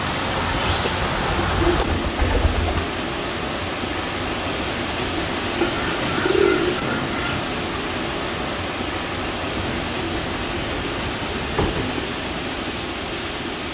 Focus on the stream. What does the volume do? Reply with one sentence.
The volume of the stream stays about the same.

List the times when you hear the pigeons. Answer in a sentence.
The pigeons can be heard from 0.3 to 3.0 s, from 5.6 to 7.5 s and from 9.5 to 12.1 s.